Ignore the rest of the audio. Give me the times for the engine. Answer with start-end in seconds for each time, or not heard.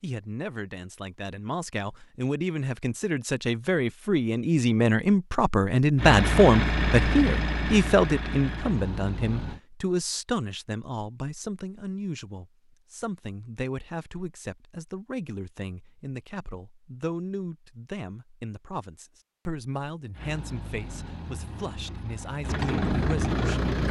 6.0-9.6, 20.1-23.8.